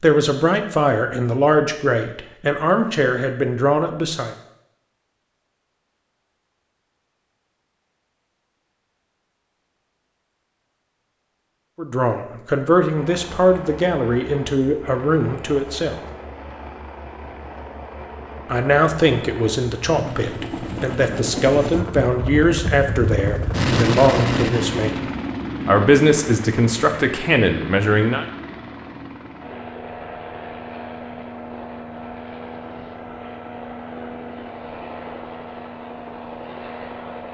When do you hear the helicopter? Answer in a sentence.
The helicopter can be heard from 12.9 to 37.2 s.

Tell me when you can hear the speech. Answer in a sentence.
The speech can be heard from 0.0 to 4.3 s, from 11.8 to 16.0 s, from 18.4 to 25.1 s and from 25.6 to 28.2 s.